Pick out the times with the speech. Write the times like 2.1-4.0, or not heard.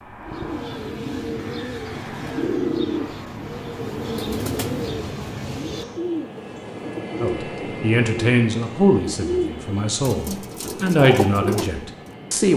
7.2-12.5.